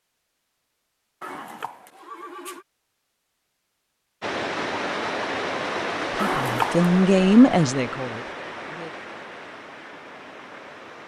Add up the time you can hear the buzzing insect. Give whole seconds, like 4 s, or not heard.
not heard.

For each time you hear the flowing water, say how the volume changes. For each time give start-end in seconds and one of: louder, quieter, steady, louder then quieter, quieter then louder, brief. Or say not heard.
4.2-11.0 quieter.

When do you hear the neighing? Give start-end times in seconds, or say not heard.
1.2-2.6, 6.2-6.8.